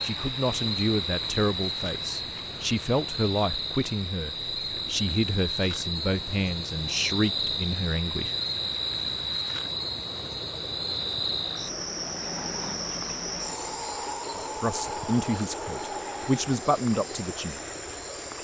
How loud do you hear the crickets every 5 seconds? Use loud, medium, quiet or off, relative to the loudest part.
loud, loud, loud, medium.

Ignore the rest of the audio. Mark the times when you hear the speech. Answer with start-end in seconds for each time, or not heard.
0.0-8.3, 14.3-17.6.